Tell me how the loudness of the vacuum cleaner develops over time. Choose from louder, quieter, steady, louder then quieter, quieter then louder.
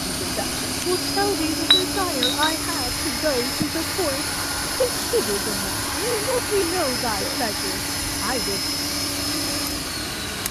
steady.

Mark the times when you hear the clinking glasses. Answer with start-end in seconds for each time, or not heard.
1.6-2.5.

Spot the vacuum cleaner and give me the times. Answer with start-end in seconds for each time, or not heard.
0.0-10.4.